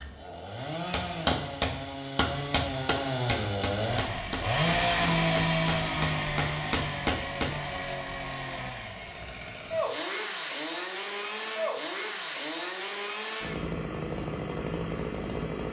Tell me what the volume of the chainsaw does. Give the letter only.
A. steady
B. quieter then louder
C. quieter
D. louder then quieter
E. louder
D.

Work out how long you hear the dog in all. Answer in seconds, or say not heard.
not heard.